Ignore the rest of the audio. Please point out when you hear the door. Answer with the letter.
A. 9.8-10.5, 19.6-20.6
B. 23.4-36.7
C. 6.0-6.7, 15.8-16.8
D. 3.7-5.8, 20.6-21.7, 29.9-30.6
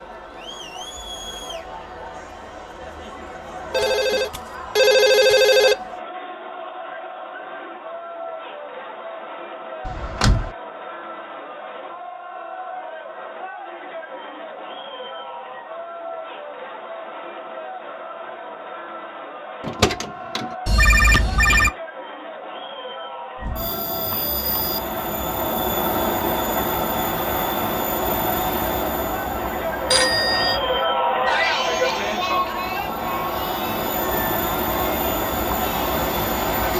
A.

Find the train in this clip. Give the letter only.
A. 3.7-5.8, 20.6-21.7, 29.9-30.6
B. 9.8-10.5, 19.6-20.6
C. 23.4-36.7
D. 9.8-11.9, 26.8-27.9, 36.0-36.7
C.